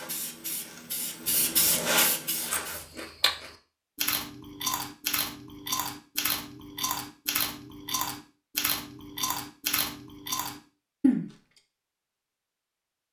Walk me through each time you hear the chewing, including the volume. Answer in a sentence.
You can hear the chewing from 2.4 to 11.3 s, at a steady volume.